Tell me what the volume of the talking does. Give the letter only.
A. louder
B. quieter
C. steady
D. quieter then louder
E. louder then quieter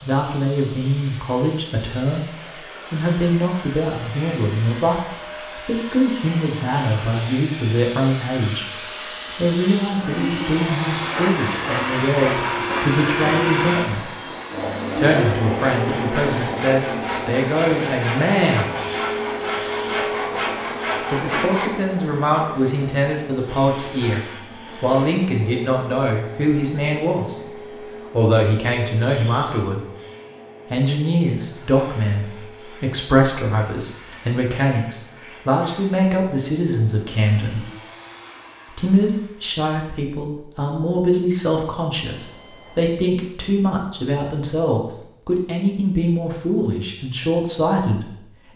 C.